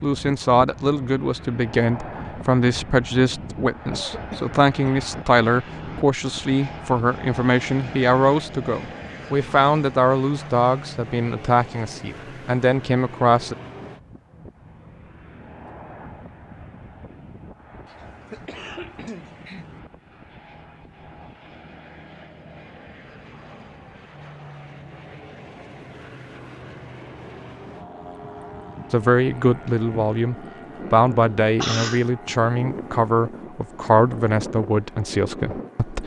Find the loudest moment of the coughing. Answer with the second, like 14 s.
32 s.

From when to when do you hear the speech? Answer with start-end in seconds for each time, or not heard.
0.0-13.6, 28.9-36.0.